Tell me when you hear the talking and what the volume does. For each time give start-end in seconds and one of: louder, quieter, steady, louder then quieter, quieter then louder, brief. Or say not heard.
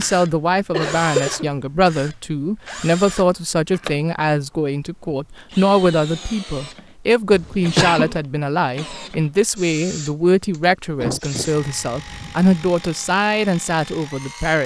0.0-14.6 steady.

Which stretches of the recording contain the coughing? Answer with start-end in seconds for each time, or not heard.
0.7-1.5, 7.3-8.2, 10.9-11.5.